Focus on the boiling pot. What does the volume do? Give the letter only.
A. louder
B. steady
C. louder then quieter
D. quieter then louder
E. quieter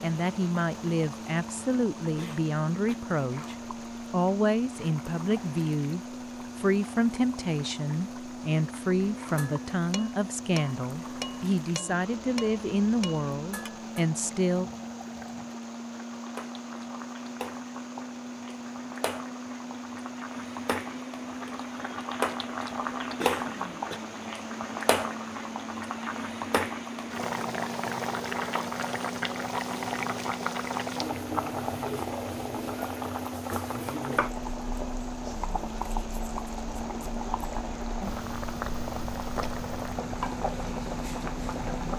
A.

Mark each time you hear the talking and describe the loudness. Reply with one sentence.
The talking can be heard from 0.0 to 14.7 s, at a steady volume.